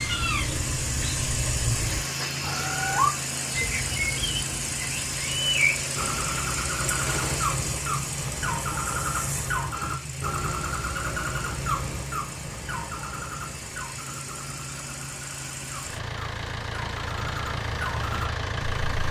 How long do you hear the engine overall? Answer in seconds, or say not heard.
19 s.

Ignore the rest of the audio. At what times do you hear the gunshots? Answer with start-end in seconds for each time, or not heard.
7.0-7.5.